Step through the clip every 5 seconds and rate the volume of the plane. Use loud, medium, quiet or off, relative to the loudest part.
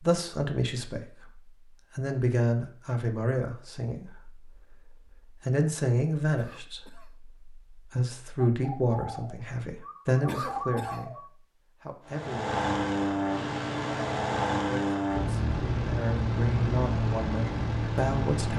off, off, loud, loud.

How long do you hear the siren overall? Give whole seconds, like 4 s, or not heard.
not heard.